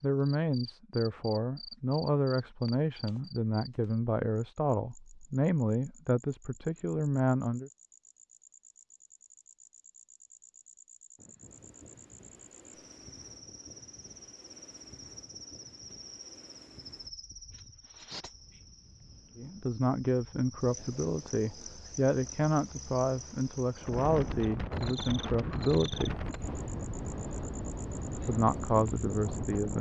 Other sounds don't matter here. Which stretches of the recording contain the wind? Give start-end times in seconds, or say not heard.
11.2-29.7.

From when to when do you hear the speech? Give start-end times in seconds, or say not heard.
0.0-7.7, 19.4-26.1, 28.2-29.7.